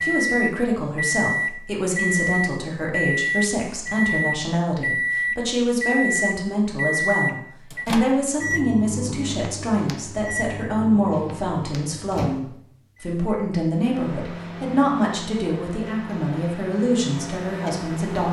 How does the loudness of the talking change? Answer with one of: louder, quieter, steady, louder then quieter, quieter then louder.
steady.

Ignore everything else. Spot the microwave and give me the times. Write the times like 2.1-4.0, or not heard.
0.0-18.2.